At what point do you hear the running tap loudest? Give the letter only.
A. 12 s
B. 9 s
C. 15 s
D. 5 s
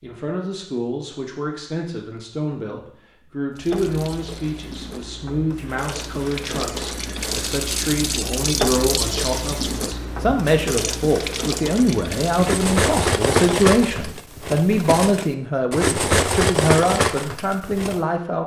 B.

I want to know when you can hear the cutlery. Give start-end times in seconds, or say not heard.
12.3-18.0.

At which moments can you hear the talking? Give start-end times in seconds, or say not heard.
0.0-18.4.